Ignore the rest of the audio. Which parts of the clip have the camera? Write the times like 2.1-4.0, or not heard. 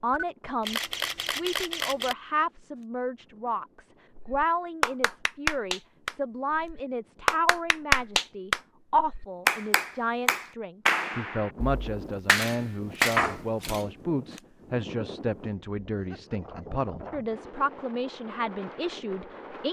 0.1-2.1, 12.3-13.9.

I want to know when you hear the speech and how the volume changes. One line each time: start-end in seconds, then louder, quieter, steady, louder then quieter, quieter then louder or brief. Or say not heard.
0.0-19.6 steady.